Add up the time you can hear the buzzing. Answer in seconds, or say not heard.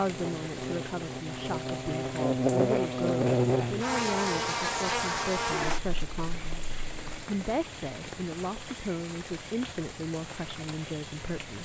7 s.